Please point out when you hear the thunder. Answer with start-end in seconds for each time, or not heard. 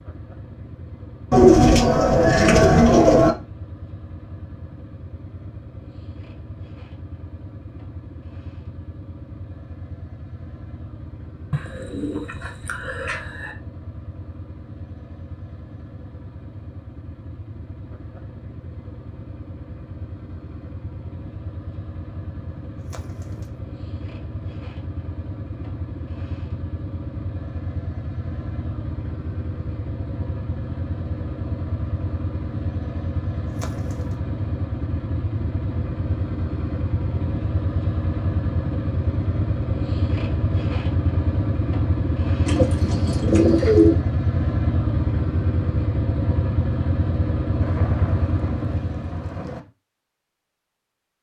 47.6-49.6.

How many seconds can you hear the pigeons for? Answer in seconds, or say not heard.
7 s.